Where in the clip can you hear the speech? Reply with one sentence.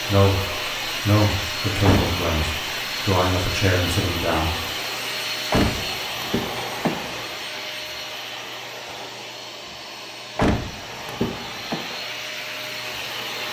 You can hear the speech from 0.1 to 4.5 s.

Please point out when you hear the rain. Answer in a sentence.
You can't hear the rain here.